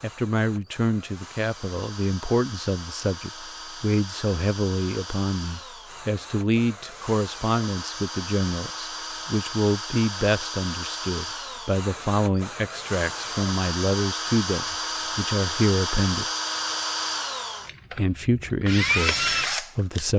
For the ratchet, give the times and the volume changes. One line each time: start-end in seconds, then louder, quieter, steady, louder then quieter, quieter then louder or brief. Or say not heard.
not heard.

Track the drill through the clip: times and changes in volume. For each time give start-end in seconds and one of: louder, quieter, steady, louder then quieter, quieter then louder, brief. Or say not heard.
0.0-20.1 louder.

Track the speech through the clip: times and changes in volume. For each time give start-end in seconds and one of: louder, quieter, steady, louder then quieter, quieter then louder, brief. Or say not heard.
0.0-16.2 steady
17.9-20.1 brief.